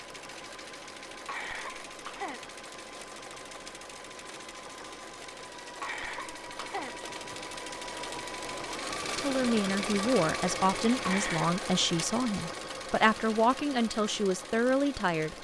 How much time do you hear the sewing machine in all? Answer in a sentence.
The sewing machine can be heard for 15 seconds in total.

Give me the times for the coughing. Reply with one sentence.
You can hear the coughing from 1.2 to 2.5 s, from 5.8 to 7.3 s and from 11.1 to 11.6 s.